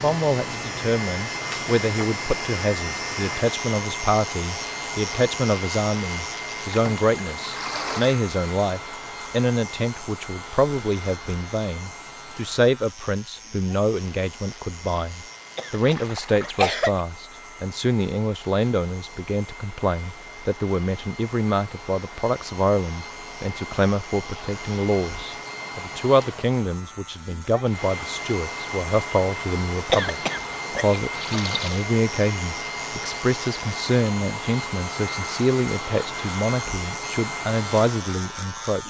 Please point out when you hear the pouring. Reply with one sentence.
The pouring can be heard from 6.7 to 8.2 s, from 15.8 to 16.6 s and from 31.1 to 31.9 s.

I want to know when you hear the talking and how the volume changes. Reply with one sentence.
You can hear the talking from 0.0 to 38.8 s, at a steady volume.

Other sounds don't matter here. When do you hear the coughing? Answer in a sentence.
You can hear the coughing from 15.6 to 17.0 s and from 29.9 to 31.0 s.